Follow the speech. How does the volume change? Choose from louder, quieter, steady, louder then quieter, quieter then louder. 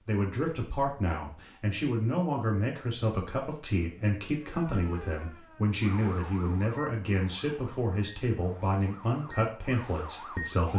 steady.